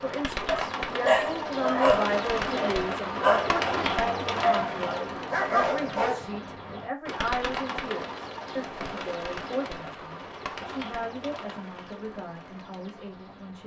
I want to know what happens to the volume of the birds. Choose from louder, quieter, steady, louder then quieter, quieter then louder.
quieter.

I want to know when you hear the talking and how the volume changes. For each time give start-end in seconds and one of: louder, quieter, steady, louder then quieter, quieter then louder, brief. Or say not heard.
0.0-13.6 quieter.